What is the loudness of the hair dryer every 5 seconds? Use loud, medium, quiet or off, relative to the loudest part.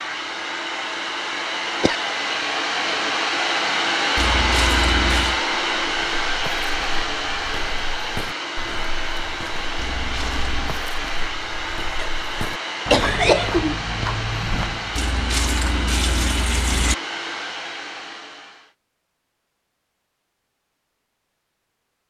loud, loud, medium, medium, off.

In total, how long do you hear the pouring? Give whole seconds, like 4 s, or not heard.
4 s.